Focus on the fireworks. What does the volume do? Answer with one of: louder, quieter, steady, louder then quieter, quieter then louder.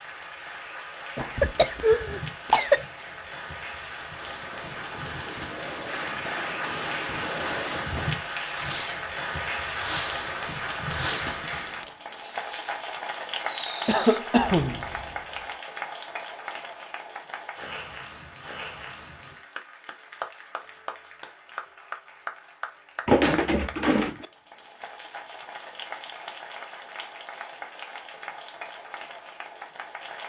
louder then quieter.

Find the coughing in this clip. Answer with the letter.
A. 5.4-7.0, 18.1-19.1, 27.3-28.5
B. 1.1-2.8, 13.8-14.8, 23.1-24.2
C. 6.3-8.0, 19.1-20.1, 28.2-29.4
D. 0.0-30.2
B.